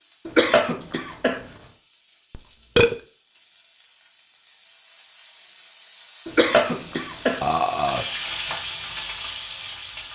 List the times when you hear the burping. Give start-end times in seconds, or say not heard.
2.3-3.0, 7.4-8.1.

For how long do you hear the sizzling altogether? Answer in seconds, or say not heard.
10 s.